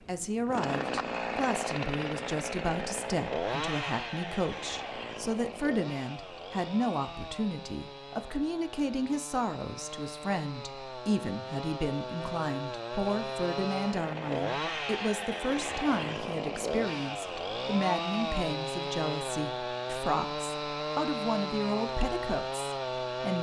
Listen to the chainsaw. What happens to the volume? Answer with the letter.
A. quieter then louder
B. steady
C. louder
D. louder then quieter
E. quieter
A.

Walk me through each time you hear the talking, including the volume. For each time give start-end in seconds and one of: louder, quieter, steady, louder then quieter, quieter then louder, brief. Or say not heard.
0.1-23.3 steady.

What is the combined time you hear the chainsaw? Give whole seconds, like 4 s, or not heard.
23 s.